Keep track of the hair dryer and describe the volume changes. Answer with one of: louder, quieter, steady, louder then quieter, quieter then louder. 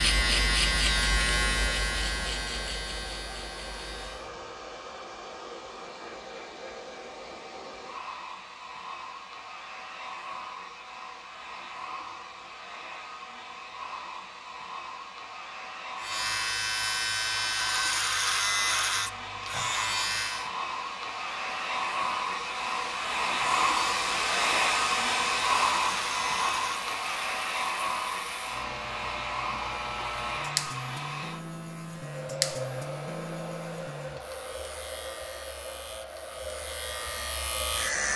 louder then quieter.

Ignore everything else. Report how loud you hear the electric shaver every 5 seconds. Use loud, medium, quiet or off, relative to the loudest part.
loud, off, off, loud, medium, medium, medium, medium.